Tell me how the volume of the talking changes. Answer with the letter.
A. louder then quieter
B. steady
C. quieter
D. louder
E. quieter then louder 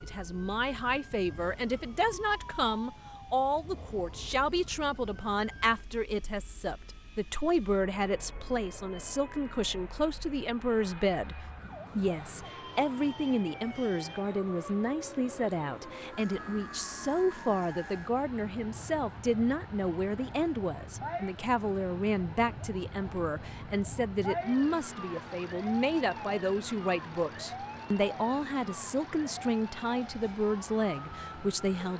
B.